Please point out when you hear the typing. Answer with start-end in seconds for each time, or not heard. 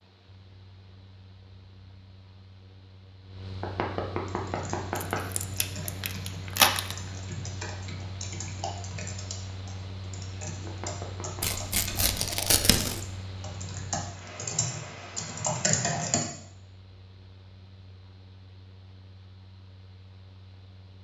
4.2-16.2.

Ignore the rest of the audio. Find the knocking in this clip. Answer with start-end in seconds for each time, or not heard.
3.6-5.2, 10.7-11.4.